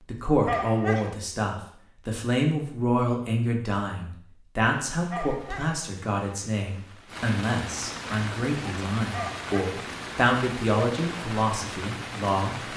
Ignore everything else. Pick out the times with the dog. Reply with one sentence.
The dog can be heard from 0.5 to 1.1 s, from 5.1 to 5.8 s and from 9.1 to 9.8 s.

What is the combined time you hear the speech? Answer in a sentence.
The speech can be heard for 13 seconds in total.